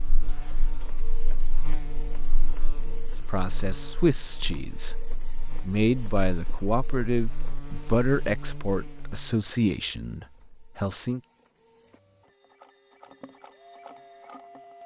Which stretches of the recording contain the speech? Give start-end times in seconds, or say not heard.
3.1-11.2.